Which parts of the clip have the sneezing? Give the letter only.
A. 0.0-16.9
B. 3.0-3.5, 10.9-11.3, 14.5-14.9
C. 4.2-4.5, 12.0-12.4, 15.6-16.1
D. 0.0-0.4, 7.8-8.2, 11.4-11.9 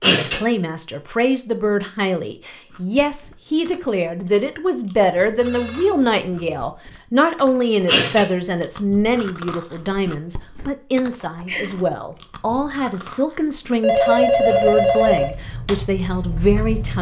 D.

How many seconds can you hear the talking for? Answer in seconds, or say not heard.
17 s.